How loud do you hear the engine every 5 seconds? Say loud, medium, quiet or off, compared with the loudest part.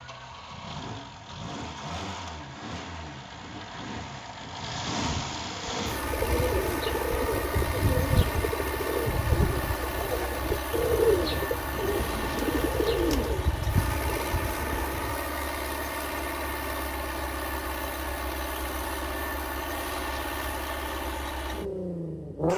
medium, loud, loud, loud, loud.